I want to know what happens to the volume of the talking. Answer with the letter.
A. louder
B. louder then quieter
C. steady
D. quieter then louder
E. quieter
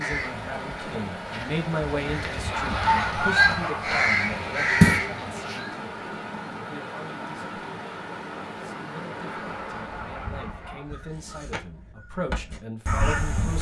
D.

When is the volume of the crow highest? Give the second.
5 s.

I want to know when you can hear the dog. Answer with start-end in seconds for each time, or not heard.
2.5-4.0, 9.3-10.9.